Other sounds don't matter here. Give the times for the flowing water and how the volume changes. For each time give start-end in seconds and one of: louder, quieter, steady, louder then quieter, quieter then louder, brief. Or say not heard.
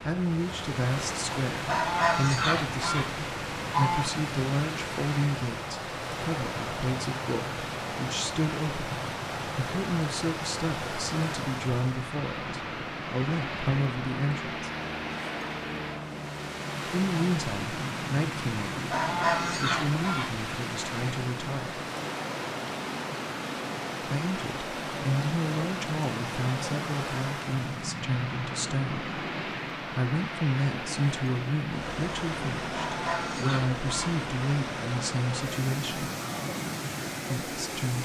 0.0-38.0 steady.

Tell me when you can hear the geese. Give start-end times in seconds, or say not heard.
1.6-4.0, 18.9-20.4, 32.7-34.1.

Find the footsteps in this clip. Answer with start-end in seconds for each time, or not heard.
not heard.